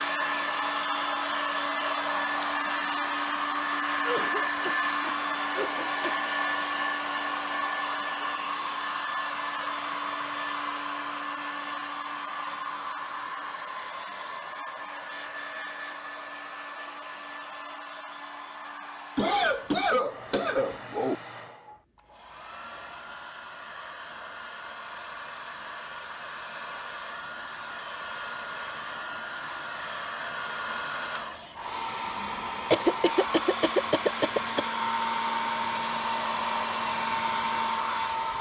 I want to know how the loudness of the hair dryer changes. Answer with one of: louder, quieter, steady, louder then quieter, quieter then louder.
quieter then louder.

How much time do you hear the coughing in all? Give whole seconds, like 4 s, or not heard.
6 s.